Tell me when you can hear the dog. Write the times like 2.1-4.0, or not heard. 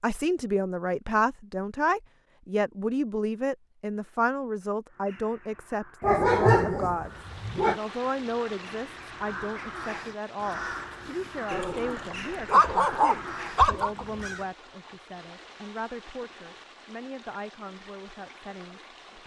6.0-7.8, 11.5-13.9.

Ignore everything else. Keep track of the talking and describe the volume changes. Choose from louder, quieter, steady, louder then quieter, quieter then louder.
quieter.